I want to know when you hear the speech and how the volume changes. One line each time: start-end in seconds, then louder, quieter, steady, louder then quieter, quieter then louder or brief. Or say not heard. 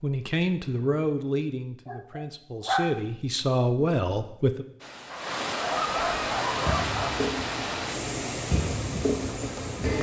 0.0-4.7 quieter then louder.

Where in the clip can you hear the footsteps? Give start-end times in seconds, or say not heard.
not heard.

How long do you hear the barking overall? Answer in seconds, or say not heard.
3 s.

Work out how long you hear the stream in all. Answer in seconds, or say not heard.
5 s.